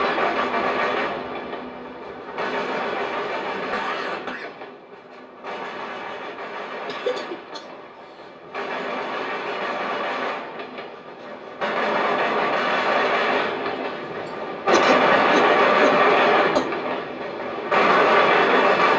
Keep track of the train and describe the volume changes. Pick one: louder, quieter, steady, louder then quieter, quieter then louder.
quieter then louder.